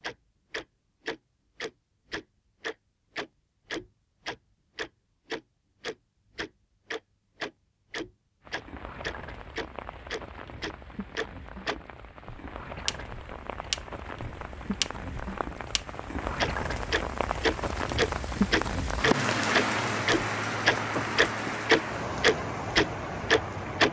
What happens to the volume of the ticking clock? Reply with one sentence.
The loudness of the ticking clock goes up.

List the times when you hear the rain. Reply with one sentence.
You can hear the rain from 8.4 to 23.8 s.